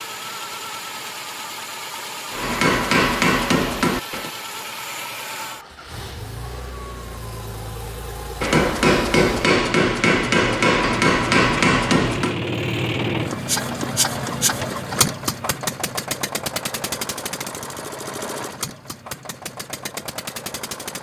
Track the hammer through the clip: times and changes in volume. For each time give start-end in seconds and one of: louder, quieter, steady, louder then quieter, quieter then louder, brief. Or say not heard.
2.3-4.3 brief
8.4-12.4 steady.